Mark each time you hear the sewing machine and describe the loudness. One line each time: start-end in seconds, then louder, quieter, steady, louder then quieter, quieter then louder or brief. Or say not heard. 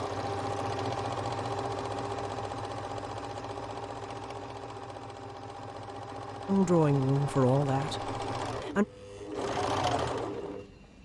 0.0-11.0 quieter then louder.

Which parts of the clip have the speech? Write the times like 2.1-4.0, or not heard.
6.5-8.8.